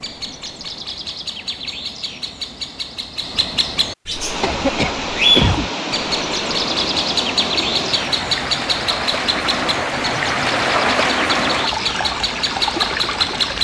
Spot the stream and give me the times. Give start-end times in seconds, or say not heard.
4.1-13.5.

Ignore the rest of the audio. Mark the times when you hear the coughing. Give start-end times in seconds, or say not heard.
4.4-5.7.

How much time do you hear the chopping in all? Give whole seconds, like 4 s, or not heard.
not heard.